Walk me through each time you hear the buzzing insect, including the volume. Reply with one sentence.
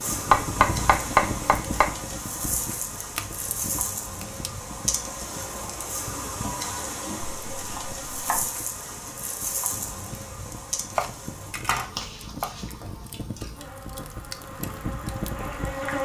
The buzzing insect can be heard from 0.0 to 16.0 s, getting quieter.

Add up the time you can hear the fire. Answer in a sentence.
The fire can be heard for 16 seconds in total.